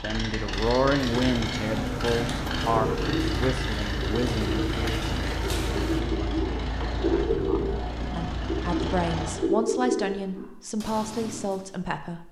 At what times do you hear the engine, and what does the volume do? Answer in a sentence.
You can hear the engine from 0.0 to 9.5 s, at a steady volume.